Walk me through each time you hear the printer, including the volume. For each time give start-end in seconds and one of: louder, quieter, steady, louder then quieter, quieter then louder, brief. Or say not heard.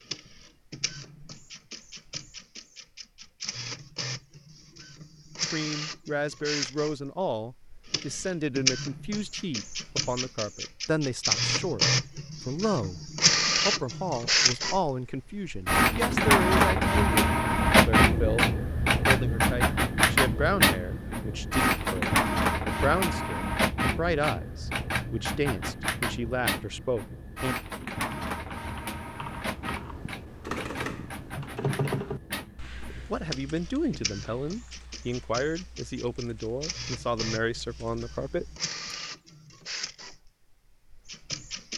0.0-41.7 louder then quieter.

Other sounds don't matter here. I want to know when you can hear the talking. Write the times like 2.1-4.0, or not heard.
5.5-27.6, 32.9-38.5.